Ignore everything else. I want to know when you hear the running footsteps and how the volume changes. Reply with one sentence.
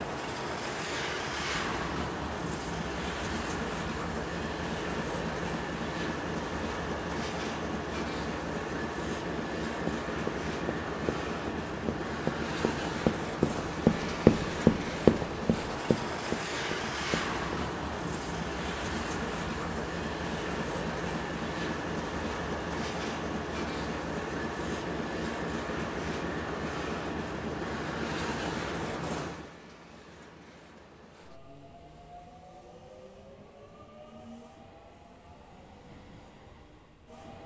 You can hear the running footsteps from 9.8 to 17.6 s, getting louder then quieter.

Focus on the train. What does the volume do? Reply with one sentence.
The volume of the train goes down.